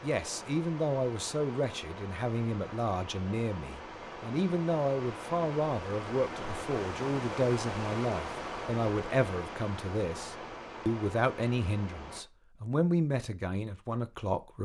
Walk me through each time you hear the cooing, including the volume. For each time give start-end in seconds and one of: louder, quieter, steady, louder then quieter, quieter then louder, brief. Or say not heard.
not heard.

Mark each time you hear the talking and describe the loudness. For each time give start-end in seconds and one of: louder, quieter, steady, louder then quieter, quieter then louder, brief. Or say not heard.
0.0-14.6 steady.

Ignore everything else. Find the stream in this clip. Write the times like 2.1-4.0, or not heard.
0.0-12.2.